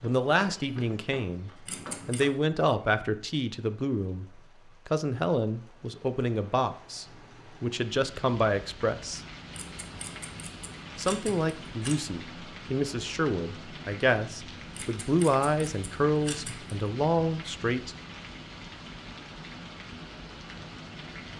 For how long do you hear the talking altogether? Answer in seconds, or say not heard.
16 s.